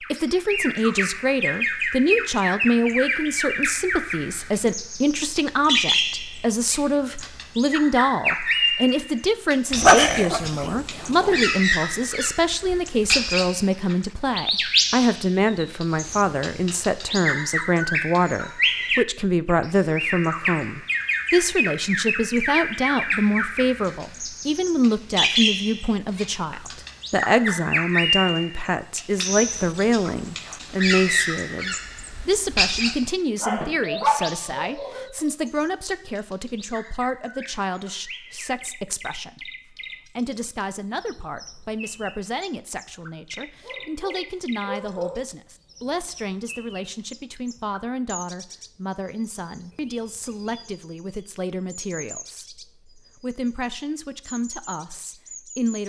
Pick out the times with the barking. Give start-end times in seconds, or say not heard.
9.7-11.3, 33.4-35.1, 43.6-45.2.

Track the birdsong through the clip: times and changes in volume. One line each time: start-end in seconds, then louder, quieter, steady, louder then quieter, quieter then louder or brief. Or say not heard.
0.0-55.8 quieter.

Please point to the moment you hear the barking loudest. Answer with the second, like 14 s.
10 s.